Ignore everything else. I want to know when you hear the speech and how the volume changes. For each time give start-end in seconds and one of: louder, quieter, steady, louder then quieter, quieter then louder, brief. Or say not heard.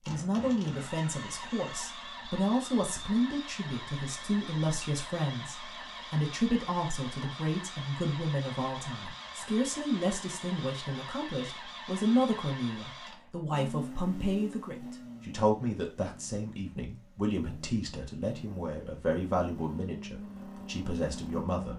0.1-21.7 steady.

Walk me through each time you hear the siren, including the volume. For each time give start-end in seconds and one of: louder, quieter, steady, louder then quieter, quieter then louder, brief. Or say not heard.
not heard.